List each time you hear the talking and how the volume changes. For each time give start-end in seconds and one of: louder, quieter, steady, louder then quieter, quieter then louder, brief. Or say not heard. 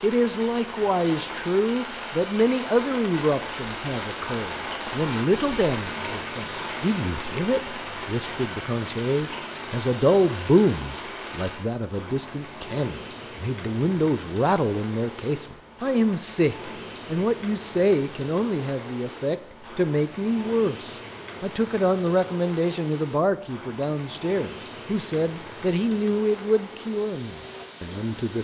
0.0-28.3 steady.